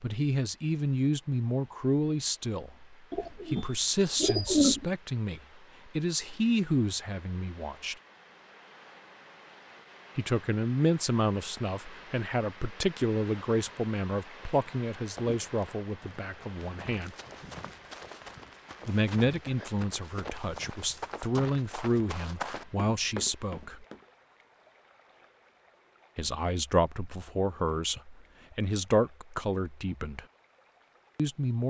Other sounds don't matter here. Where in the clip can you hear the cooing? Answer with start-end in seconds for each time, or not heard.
3.1-4.8.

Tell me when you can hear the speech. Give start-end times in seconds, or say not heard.
0.0-8.0, 10.2-17.1, 18.9-23.9, 26.1-30.2, 31.1-31.6.